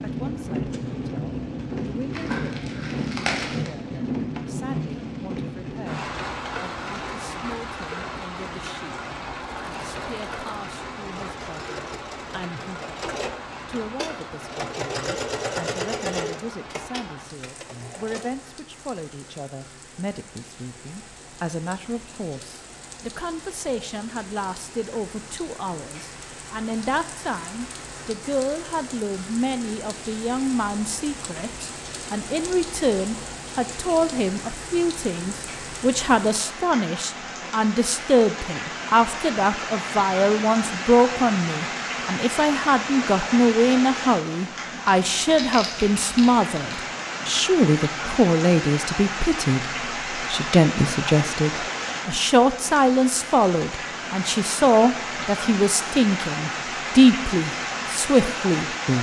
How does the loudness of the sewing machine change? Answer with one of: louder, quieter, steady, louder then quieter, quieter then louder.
louder then quieter.